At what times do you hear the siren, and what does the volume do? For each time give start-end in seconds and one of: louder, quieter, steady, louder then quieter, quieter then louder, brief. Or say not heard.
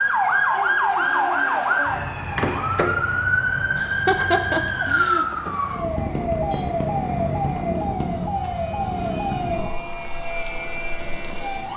0.0-11.7 quieter.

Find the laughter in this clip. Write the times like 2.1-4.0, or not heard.
3.8-5.2.